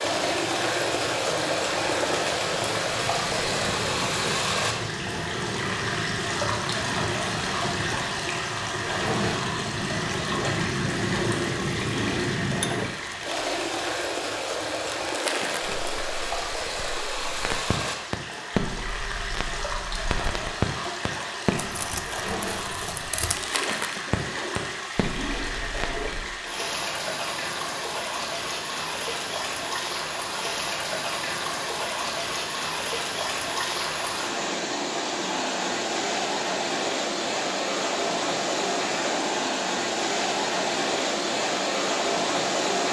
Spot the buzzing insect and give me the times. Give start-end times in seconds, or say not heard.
not heard.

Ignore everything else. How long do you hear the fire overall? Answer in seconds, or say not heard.
26 s.